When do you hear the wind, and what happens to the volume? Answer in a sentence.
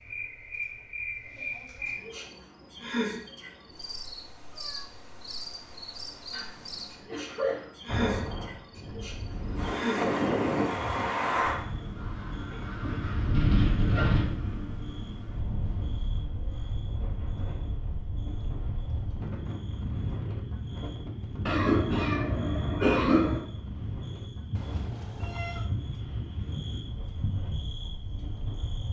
You can hear the wind from 7.8 to 28.8 s, getting quieter.